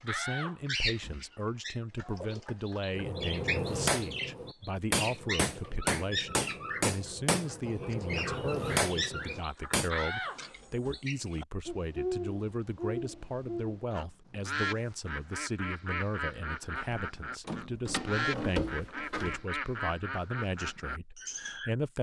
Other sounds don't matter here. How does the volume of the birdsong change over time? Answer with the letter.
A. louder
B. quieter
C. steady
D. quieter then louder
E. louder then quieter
C.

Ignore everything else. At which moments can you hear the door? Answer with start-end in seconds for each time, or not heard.
0.1-1.2, 9.8-11.0, 16.8-19.4.